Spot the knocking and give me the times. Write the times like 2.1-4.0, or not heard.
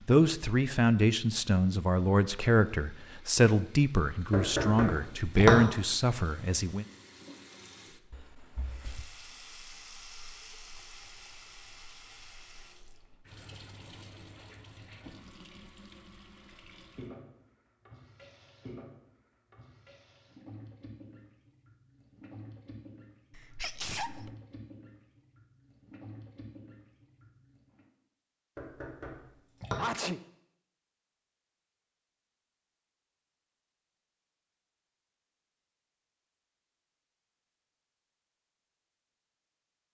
4.3-5.5, 28.6-29.8.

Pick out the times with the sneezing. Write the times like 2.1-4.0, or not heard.
8.1-9.1, 23.3-24.4, 29.8-30.2.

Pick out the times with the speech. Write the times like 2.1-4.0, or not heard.
0.1-6.8.